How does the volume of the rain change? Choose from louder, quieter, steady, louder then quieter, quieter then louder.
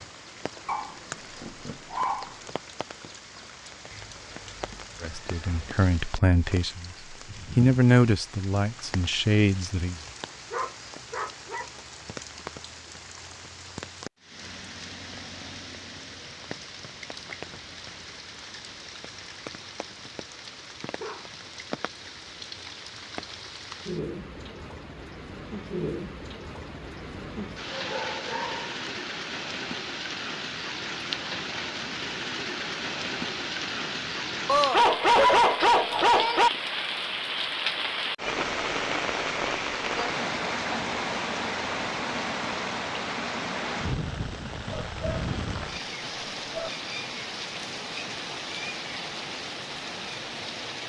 louder.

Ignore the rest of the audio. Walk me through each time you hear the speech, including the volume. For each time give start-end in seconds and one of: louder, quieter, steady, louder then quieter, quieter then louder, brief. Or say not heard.
5.0-10.0 louder then quieter.